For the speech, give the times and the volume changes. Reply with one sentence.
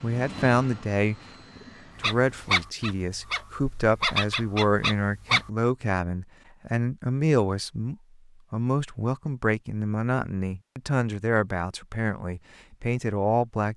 The speech can be heard from 0.0 to 13.7 s, at a steady volume.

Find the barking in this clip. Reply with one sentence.
You can hear the barking from 2.0 to 5.5 s.